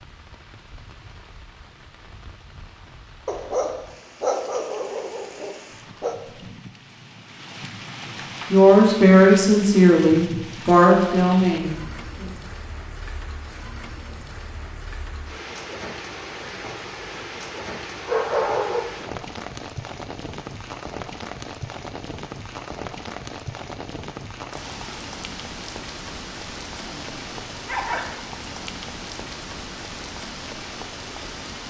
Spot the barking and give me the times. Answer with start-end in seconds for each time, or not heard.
3.2-6.2, 17.6-18.9, 26.8-28.3.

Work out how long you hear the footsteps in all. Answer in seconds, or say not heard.
not heard.